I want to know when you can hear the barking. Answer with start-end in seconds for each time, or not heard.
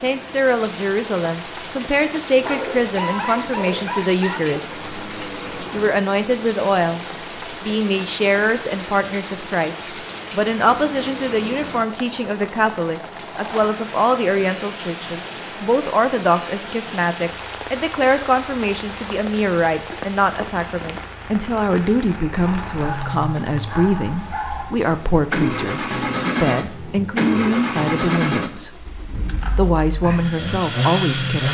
2.4-4.6, 22.4-24.8.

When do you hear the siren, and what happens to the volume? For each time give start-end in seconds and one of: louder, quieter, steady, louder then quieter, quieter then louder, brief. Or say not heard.
not heard.